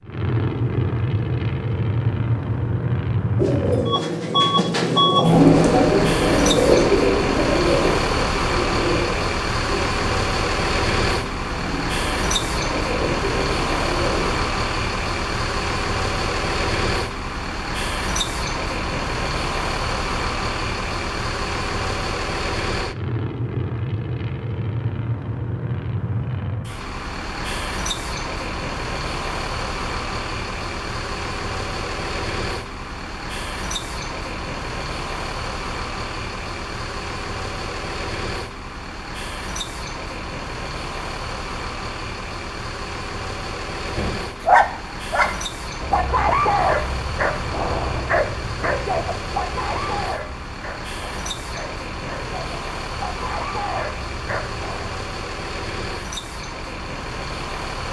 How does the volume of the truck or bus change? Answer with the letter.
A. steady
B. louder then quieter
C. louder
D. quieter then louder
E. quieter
E.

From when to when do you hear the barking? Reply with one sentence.
The barking can be heard from 43.9 to 55.0 s.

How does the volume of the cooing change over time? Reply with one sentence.
The volume of the cooing goes up, then down.